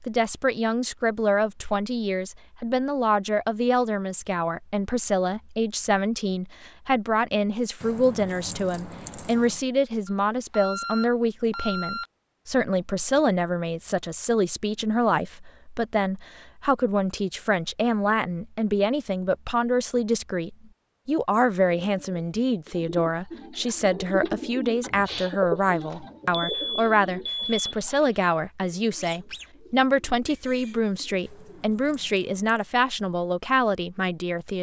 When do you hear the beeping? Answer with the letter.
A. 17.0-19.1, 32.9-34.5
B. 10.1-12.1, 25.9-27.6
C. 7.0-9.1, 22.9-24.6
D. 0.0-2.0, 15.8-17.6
B.